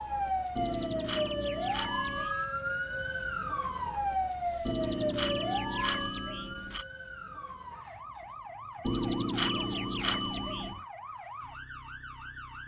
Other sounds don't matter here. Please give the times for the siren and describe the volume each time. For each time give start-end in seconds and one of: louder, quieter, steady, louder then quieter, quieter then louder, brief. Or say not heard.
0.0-12.6 quieter.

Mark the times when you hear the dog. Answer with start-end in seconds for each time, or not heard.
not heard.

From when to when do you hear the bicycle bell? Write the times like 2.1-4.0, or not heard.
0.6-2.3, 4.7-6.8, 8.8-10.8.